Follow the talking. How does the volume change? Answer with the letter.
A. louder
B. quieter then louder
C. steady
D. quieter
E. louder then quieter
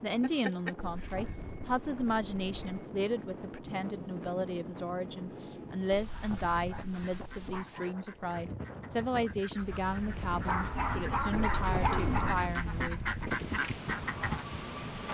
C.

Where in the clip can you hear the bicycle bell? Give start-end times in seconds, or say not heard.
0.8-2.9, 5.9-7.5, 11.3-12.4.